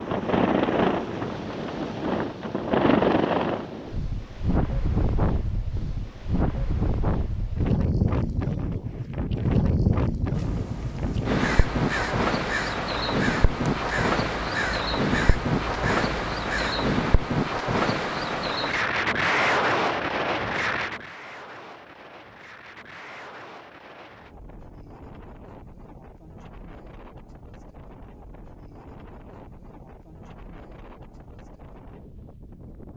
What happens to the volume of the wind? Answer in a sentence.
The volume of the wind goes down.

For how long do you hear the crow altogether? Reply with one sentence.
You can hear the crow for 7 seconds altogether.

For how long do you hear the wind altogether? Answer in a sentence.
You can hear the wind for 33 seconds altogether.